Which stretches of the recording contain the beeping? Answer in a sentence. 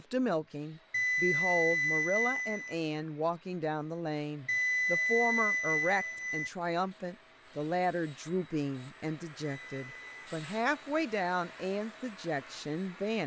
The beeping can be heard from 0.9 to 2.8 s, from 4.5 to 6.5 s and from 9.6 to 10.2 s.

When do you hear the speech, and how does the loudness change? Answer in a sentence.
The speech can be heard from 0.0 to 13.2 s, at a steady volume.